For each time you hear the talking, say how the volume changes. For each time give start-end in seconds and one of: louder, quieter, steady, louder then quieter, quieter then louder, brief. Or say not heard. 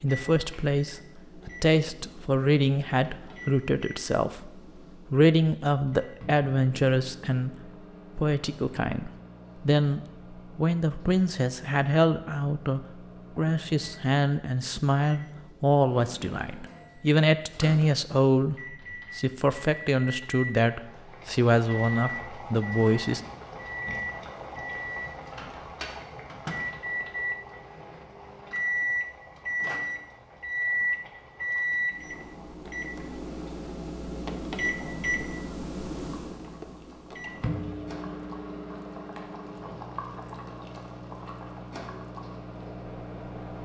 0.0-23.2 steady.